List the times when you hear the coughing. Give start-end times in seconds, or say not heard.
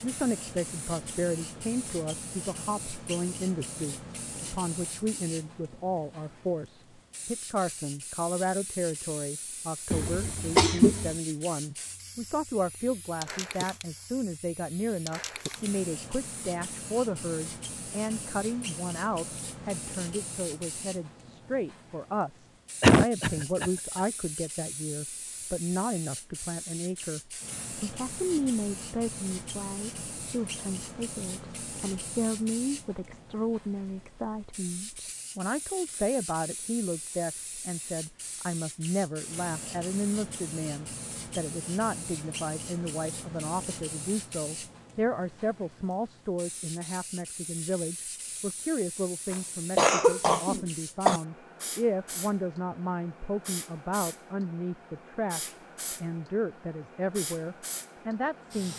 9.9-11.2, 22.8-23.7, 49.3-51.2.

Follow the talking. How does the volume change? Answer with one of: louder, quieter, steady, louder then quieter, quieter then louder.
steady.